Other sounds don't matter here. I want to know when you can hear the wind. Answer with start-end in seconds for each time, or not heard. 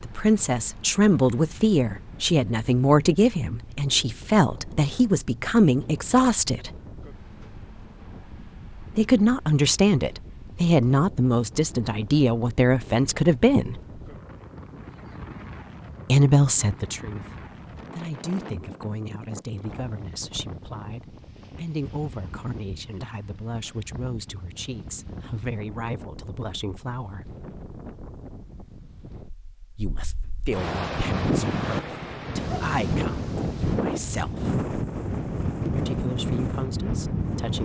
0.0-37.6.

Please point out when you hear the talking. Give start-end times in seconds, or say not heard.
0.0-6.7, 8.9-13.8, 16.1-27.3, 29.8-34.5, 35.6-37.6.